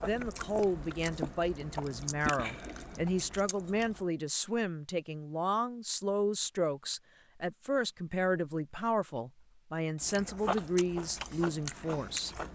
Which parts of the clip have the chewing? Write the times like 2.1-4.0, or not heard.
0.0-4.0, 10.0-12.5.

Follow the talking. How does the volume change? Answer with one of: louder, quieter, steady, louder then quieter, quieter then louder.
steady.